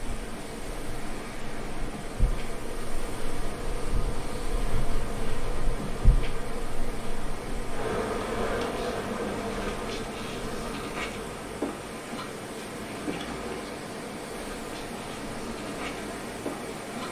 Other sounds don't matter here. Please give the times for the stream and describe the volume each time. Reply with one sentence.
The stream can be heard from 0.0 to 17.0 s, at a steady volume.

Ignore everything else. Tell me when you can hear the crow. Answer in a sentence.
The crow can't be heard in this clip.